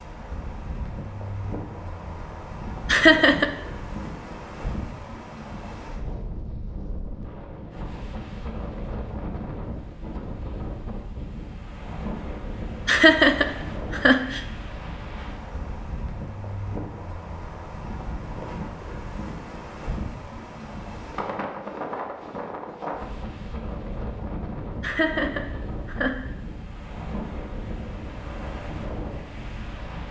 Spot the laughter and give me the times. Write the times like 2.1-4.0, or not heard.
2.9-3.5, 12.8-14.4, 24.8-26.1.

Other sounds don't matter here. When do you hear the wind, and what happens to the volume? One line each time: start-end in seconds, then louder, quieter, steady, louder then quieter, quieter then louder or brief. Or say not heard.
0.0-30.0 steady.